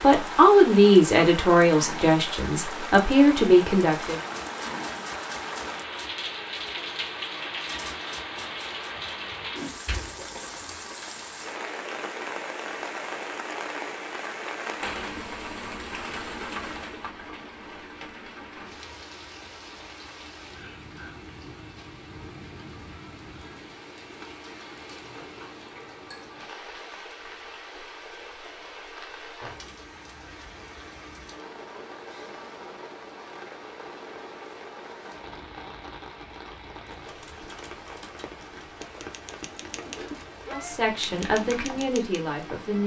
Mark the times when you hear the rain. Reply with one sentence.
You can hear the rain from 0.0 to 42.8 s.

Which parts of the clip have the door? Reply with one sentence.
You can hear the door from 9.7 to 10.8 s.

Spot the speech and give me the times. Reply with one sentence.
You can hear the speech from 0.0 to 4.2 s and from 40.5 to 42.8 s.